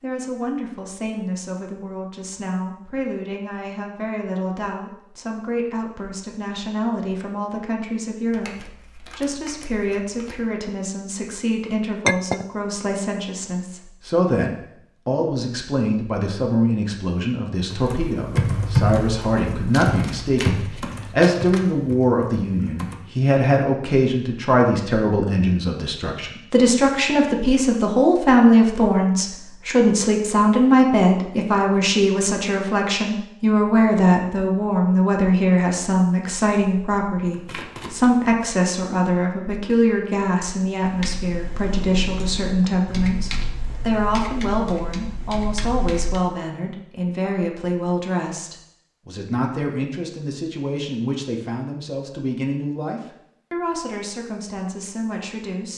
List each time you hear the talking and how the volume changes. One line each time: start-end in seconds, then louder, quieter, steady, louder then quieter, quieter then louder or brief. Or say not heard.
0.0-55.7 louder then quieter.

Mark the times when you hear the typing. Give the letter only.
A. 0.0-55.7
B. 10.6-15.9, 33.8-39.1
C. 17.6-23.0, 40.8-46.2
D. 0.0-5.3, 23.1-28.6
C.